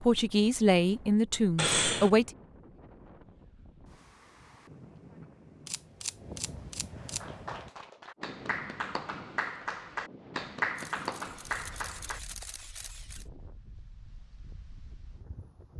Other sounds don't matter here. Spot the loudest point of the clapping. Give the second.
11 s.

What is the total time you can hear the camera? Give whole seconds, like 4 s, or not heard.
5 s.